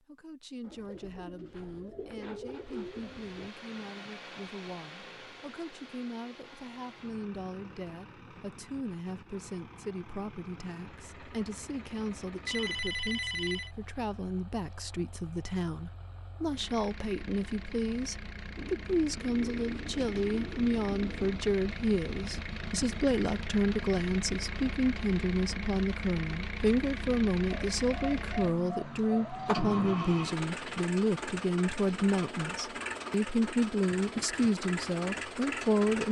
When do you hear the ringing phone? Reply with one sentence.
The ringing phone can be heard from 12.4 to 13.7 s.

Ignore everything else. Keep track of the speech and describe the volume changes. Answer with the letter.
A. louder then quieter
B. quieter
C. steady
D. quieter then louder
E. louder
E.